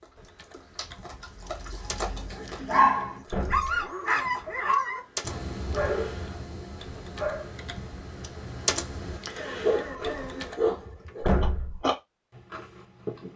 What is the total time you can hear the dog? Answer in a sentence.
You can hear the dog for 9 seconds altogether.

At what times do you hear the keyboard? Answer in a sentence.
The keyboard can be heard from 0.1 to 10.6 s.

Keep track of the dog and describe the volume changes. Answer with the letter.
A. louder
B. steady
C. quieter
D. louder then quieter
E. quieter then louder
E.